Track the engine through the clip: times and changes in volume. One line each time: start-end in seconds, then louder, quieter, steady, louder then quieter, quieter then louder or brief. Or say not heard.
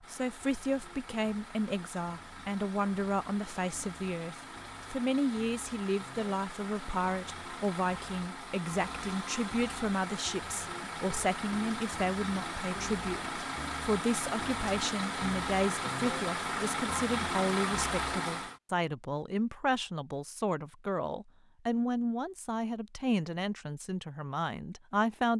0.0-18.6 louder.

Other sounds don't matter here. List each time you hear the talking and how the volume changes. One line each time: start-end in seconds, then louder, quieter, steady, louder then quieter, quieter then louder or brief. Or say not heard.
0.1-25.3 steady.